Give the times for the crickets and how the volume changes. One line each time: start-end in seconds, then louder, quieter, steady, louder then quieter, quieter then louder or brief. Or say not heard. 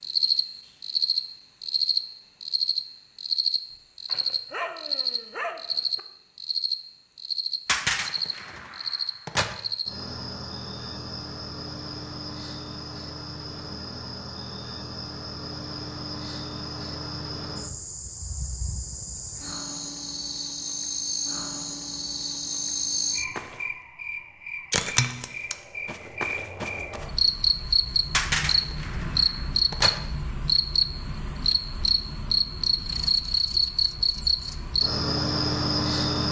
0.0-36.2 quieter then louder.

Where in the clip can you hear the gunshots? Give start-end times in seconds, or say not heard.
7.7-9.6, 28.1-30.0.